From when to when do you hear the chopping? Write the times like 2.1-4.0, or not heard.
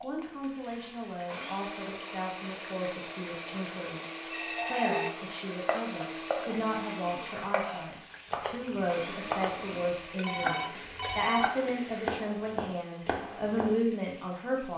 5.7-13.8.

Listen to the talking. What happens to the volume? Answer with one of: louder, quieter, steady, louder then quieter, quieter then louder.
louder.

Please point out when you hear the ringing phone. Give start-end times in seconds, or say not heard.
4.3-5.2, 10.2-12.1.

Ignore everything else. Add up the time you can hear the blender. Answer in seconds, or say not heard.
10 s.